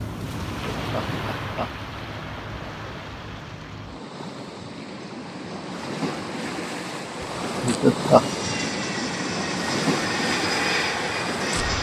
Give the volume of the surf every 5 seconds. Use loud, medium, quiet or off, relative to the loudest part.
medium, loud, loud.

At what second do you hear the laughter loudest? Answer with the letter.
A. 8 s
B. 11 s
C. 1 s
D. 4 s
A.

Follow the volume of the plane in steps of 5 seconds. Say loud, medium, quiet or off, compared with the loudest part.
off, medium, loud.